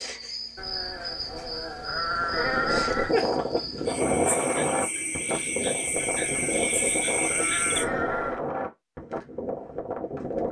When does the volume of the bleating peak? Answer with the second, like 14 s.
3 s.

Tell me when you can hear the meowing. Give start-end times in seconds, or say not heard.
not heard.